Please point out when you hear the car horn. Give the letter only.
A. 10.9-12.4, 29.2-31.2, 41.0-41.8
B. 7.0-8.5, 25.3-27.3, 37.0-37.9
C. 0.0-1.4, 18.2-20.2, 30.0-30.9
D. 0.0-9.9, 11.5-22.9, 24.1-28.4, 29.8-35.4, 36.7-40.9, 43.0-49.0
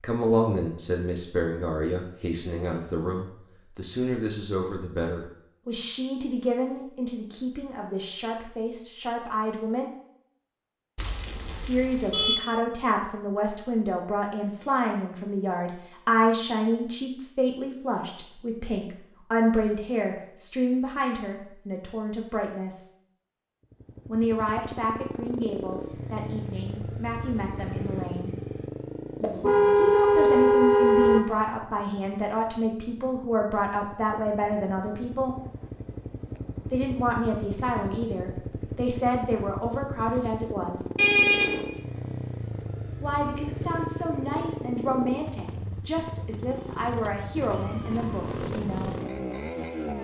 A.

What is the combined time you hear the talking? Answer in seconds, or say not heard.
41 s.